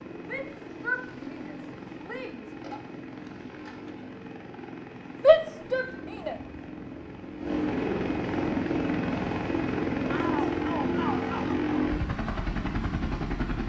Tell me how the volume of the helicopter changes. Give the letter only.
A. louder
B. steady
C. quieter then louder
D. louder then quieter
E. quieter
A.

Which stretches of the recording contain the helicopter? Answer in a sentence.
You can hear the helicopter from 0.0 to 13.6 s.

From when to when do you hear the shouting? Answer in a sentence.
The shouting can be heard from 0.2 to 2.8 s, from 5.2 to 6.3 s and from 10.1 to 11.9 s.